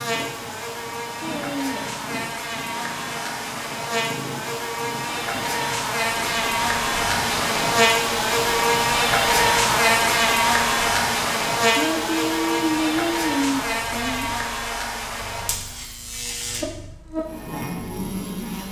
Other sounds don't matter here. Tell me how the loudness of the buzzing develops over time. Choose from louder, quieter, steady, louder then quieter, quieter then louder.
louder then quieter.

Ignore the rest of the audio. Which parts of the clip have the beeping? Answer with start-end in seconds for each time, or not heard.
not heard.